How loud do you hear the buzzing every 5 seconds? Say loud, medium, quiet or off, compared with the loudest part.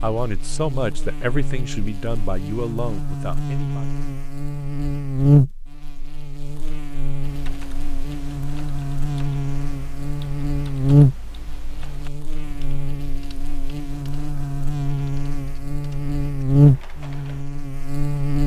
medium, loud, loud, loud.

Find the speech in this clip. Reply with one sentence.
The speech can be heard from 0.0 to 3.9 s.